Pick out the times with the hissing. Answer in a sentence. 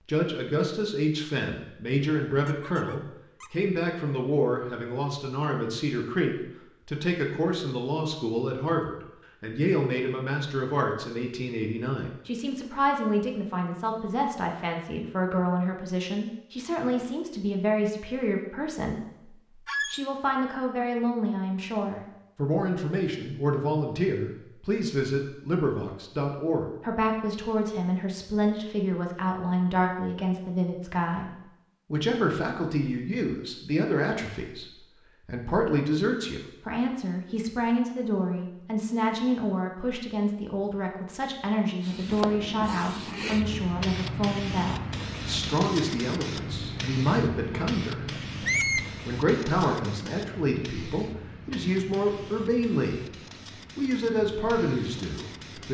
You can hear the hissing from 41.8 to 55.6 s.